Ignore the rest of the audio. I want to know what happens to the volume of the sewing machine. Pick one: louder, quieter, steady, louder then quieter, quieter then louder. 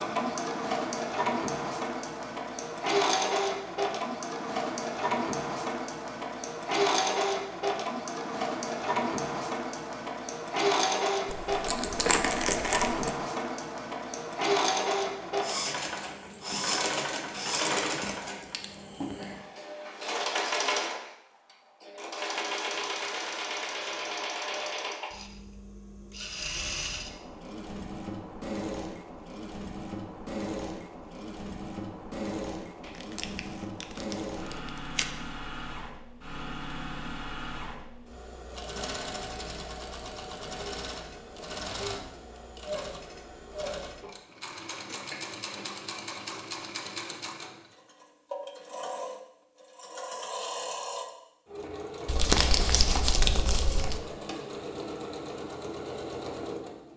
quieter.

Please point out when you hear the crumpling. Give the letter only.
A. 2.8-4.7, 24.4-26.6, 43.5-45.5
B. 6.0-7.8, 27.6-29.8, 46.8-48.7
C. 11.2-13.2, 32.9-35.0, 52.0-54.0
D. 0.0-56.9
C.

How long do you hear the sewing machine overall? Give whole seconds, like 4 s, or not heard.
57 s.